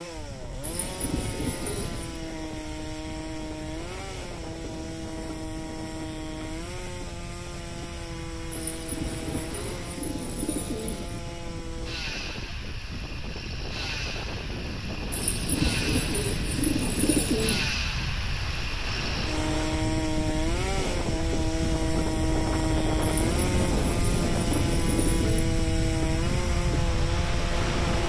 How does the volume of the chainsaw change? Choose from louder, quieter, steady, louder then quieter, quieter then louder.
louder.